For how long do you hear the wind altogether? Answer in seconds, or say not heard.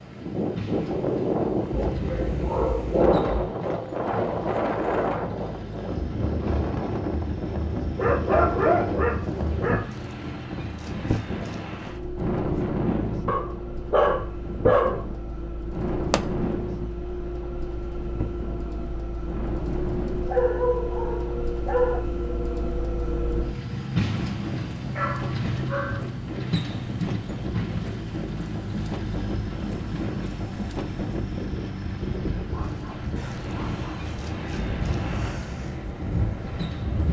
37 s.